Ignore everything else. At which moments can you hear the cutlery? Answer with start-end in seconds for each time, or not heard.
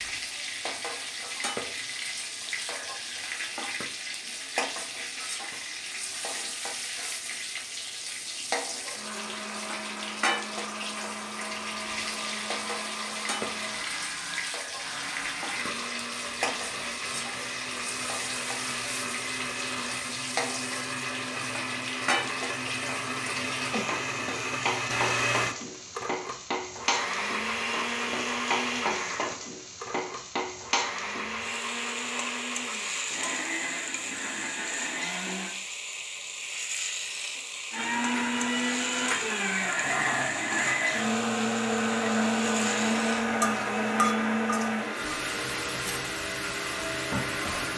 not heard.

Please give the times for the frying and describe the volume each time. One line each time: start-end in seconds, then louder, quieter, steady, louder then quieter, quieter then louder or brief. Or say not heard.
0.0-47.7 steady.